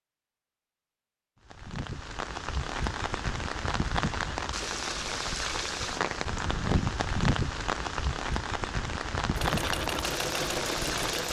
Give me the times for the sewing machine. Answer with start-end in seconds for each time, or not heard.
9.3-11.2.